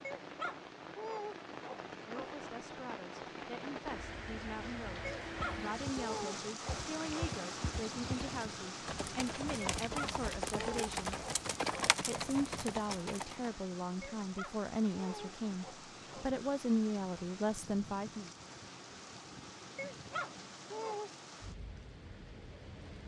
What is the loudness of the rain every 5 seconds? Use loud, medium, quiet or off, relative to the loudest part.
loud, loud, medium, medium, medium.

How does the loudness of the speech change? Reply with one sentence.
The volume of the speech goes up.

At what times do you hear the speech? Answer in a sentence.
You can hear the speech from 1.9 to 11.2 s and from 12.1 to 18.3 s.